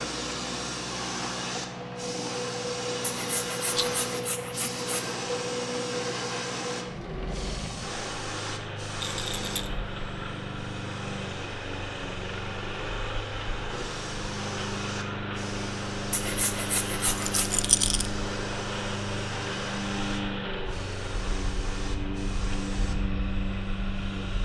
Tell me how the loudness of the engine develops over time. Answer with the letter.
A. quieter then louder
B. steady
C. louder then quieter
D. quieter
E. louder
B.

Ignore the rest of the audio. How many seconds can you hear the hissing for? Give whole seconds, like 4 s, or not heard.
24 s.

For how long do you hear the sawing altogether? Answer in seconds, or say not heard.
4 s.